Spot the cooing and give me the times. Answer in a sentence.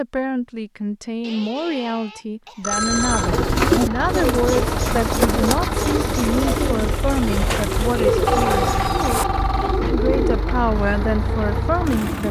The cooing can be heard from 3.1 to 10.4 s.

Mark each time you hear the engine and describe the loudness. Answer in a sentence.
You can hear the engine from 2.7 to 12.2 s, at a steady volume.